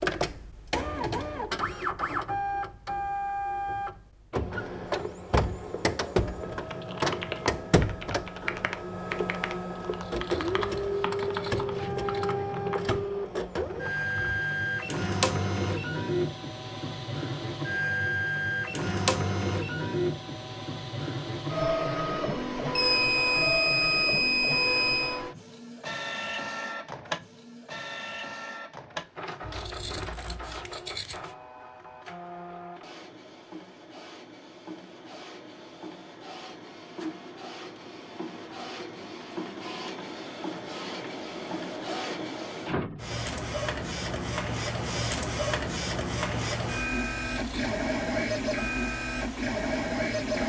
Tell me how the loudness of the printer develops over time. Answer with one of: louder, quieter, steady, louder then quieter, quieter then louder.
quieter then louder.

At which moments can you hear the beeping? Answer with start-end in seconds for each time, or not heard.
22.8-25.2.